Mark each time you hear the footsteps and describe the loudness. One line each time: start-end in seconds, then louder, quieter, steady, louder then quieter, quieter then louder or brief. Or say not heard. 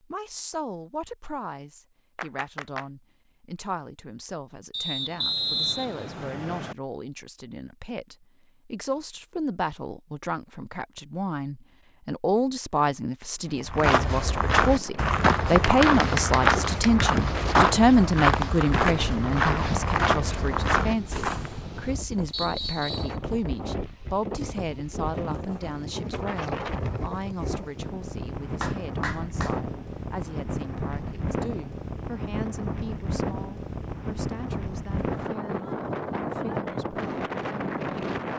13.4-21.6 steady.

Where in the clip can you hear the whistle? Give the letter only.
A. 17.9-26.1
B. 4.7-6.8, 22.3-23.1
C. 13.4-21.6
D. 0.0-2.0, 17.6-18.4
B.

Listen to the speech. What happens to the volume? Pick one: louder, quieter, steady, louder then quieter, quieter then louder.
louder then quieter.